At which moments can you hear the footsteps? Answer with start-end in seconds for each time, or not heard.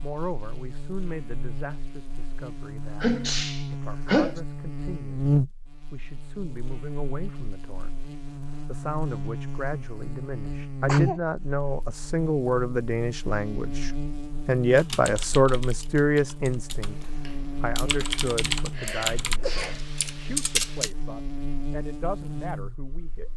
not heard.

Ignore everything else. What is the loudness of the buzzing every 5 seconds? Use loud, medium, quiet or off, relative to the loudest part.
medium, loud, loud, medium, medium.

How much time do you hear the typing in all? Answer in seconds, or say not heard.
6 s.